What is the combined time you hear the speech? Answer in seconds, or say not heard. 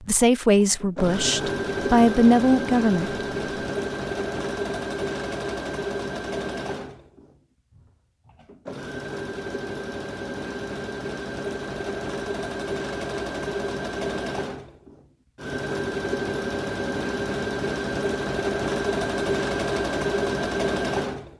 3 s.